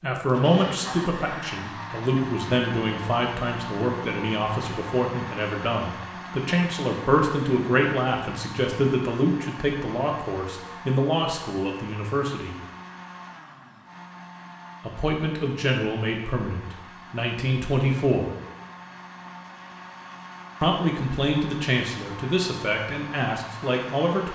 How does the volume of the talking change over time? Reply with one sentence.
The volume of the talking stays about the same.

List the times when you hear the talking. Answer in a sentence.
The talking can be heard from 0.0 to 12.6 s, from 14.8 to 18.3 s and from 20.6 to 24.2 s.